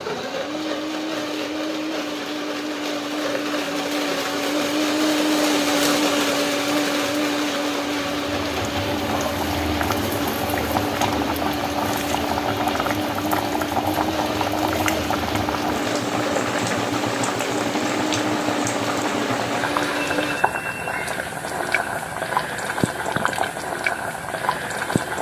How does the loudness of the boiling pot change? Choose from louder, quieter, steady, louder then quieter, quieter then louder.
steady.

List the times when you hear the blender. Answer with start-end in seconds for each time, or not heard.
0.0-20.4.